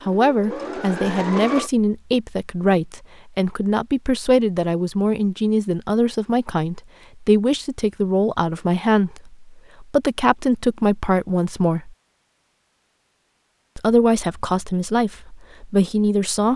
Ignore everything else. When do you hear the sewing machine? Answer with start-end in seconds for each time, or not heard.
0.0-1.7.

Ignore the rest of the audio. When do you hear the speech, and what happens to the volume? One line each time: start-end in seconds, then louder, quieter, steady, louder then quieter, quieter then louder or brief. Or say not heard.
0.0-11.9 steady
13.8-16.5 brief.